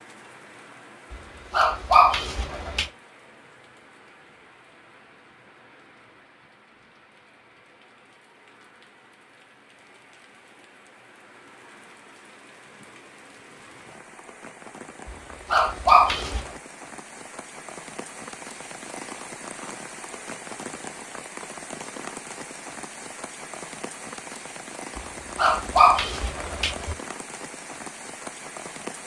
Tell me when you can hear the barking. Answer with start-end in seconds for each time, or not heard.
1.1-2.9, 15.1-16.4, 24.9-26.9.